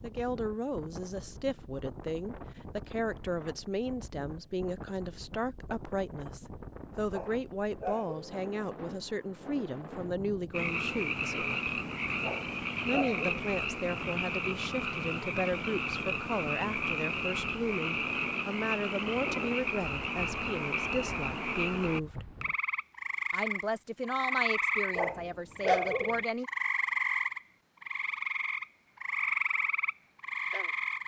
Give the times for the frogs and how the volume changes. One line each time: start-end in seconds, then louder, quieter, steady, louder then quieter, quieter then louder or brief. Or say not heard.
10.5-31.0 steady.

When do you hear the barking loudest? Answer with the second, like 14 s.
26 s.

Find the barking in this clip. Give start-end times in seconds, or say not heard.
7.1-8.3, 12.2-13.4, 24.9-26.2.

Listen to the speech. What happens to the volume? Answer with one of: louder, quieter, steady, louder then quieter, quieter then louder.
steady.